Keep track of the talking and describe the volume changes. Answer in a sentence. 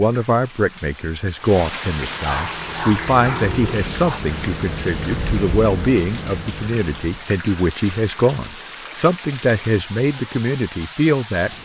The loudness of the talking stays about the same.